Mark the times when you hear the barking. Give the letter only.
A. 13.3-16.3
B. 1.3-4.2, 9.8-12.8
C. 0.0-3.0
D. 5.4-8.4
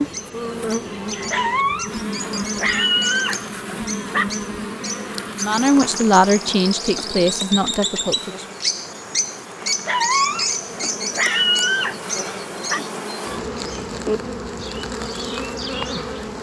B.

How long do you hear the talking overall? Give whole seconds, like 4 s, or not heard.
3 s.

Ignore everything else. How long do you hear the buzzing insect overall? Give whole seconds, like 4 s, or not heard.
16 s.